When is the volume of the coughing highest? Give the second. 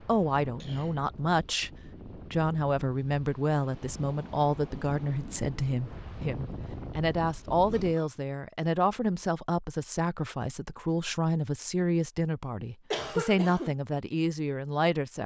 13 s.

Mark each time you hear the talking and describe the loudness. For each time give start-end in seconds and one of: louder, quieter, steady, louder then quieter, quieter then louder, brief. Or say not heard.
0.1-1.7 brief
2.3-15.2 steady.